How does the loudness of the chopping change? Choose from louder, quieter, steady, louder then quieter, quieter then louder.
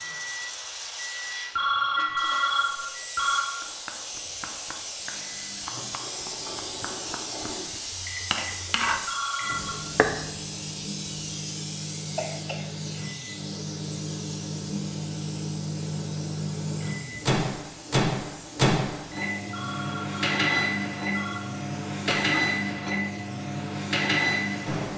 louder.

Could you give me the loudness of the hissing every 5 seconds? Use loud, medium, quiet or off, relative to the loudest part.
loud, loud, loud, medium, quiet.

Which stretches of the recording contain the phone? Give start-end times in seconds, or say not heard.
1.6-3.5, 9.1-9.8, 19.5-21.4.